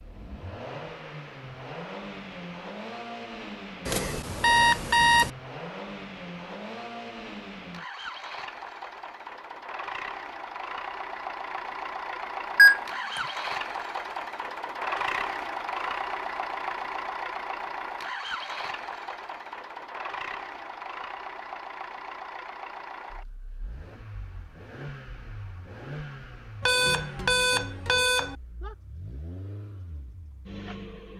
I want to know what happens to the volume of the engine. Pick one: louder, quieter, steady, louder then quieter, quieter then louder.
louder then quieter.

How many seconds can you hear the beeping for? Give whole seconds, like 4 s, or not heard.
4 s.